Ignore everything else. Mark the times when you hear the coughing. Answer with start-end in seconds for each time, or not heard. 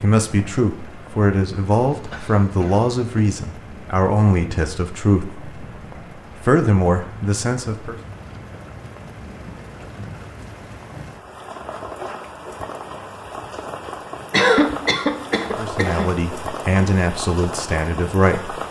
1.9-3.2, 14.3-16.1.